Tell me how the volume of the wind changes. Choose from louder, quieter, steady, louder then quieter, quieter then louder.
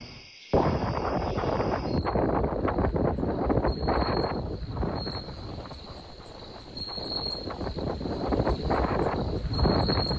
quieter then louder.